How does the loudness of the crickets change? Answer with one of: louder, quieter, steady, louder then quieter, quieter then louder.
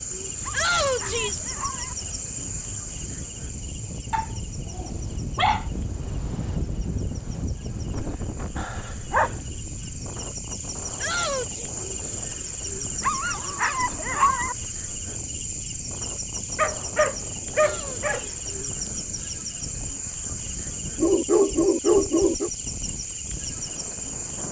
quieter then louder.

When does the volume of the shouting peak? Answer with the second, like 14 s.
1 s.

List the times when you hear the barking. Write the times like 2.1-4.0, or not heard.
0.4-1.9, 4.1-5.7, 8.6-9.3, 13.0-14.6, 16.6-18.2, 20.9-22.5.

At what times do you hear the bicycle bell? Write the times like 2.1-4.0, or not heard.
not heard.